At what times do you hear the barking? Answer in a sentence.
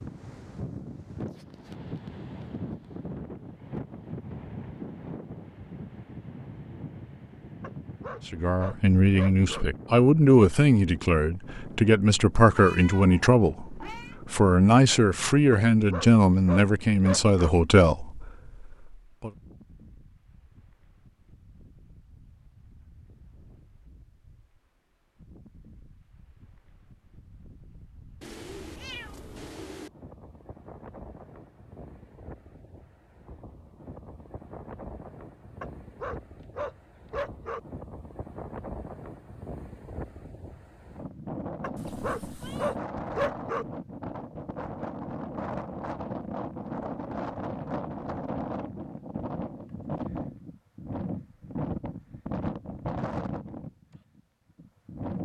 The barking can be heard from 7.6 to 9.7 s, from 15.5 to 17.6 s, from 35.6 to 37.6 s and from 41.6 to 43.6 s.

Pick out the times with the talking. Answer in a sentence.
You can hear the talking from 8.2 to 19.3 s.